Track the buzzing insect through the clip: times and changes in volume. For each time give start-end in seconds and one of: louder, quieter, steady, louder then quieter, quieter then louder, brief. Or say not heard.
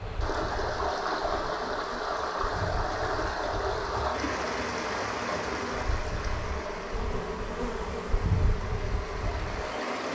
0.0-10.1 louder.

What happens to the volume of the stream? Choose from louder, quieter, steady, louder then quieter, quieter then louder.
quieter.